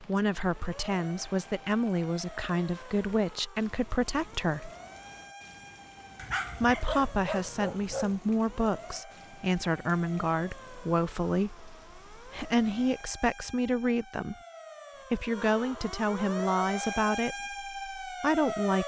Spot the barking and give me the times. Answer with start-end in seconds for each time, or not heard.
6.2-8.2.